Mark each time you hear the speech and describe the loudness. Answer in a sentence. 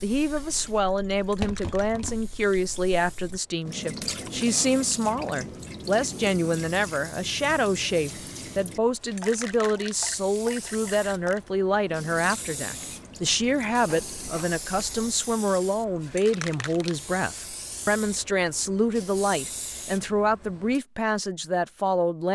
The speech can be heard from 0.0 to 22.3 s, at a steady volume.